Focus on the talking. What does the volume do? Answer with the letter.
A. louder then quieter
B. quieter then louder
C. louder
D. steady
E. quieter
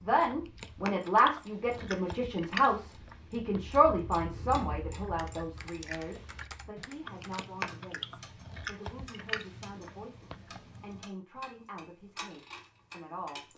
E.